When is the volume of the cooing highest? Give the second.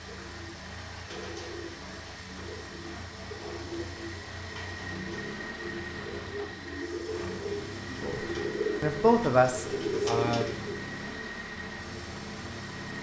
10 s.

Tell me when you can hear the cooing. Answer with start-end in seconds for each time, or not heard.
0.1-11.2.